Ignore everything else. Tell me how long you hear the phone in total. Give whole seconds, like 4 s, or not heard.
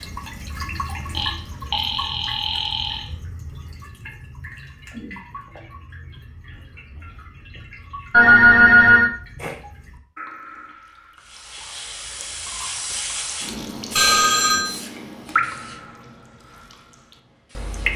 4 s.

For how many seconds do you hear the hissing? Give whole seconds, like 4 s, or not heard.
7 s.